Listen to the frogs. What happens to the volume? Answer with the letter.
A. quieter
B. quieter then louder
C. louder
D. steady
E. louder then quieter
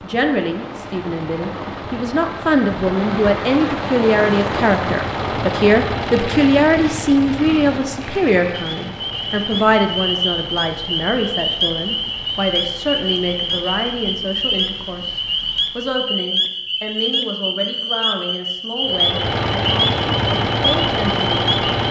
D.